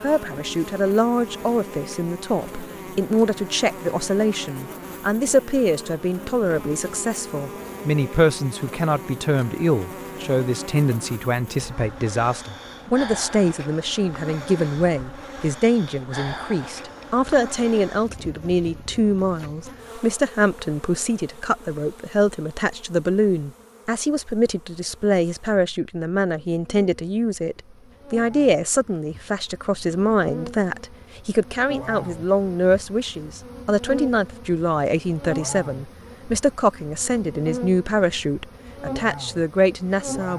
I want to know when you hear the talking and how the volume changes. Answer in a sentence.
The talking can be heard from 0.0 to 40.3 s, at a steady volume.